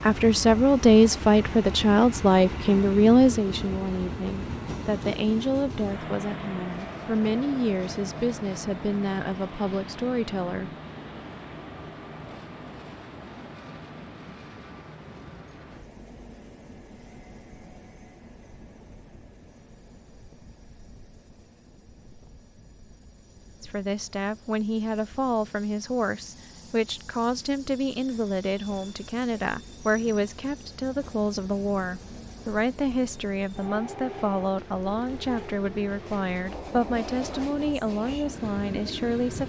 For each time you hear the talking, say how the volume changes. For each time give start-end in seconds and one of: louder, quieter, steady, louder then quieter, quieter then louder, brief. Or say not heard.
0.0-10.7 quieter
23.6-39.4 steady.